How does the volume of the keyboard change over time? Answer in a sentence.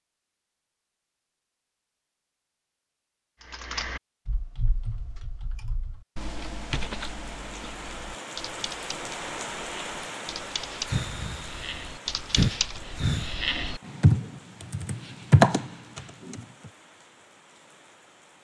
The volume of the keyboard goes up.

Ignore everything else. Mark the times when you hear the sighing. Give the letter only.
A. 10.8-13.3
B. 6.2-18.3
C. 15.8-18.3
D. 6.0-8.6
A.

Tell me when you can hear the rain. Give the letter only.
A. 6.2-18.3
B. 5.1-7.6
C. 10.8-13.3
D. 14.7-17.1
A.